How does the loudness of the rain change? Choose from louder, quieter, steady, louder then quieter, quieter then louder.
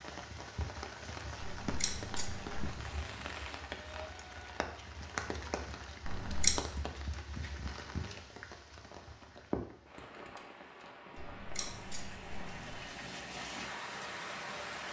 steady.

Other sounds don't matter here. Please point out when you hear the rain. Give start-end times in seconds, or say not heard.
0.0-14.8.